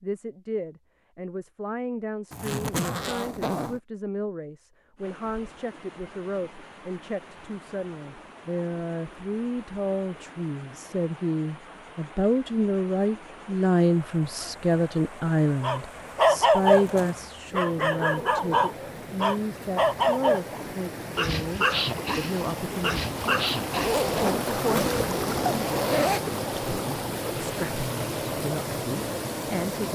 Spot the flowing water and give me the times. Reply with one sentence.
You can hear the flowing water from 5.0 to 29.9 s.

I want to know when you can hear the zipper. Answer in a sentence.
The zipper can be heard from 2.3 to 3.8 s, from 16.5 to 17.3 s and from 23.7 to 26.2 s.